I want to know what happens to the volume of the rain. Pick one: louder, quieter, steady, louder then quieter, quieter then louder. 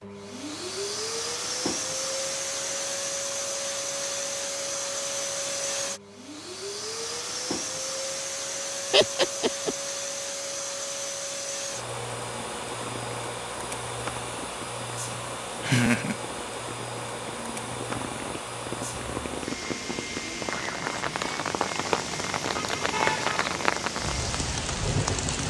louder.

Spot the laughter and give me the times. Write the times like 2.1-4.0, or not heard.
8.9-9.8, 15.6-16.1.